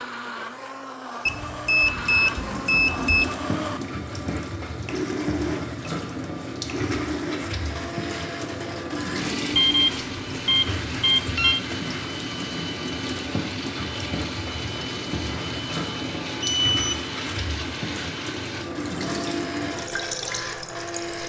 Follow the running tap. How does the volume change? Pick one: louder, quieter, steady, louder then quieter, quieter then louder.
steady.